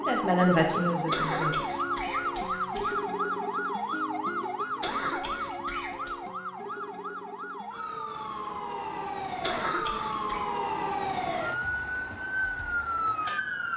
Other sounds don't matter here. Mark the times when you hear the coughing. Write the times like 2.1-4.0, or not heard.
1.1-3.0, 4.8-6.2, 9.4-10.5.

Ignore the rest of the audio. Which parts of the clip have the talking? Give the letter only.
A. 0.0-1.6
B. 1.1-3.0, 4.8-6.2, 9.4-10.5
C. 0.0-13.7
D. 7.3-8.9
A.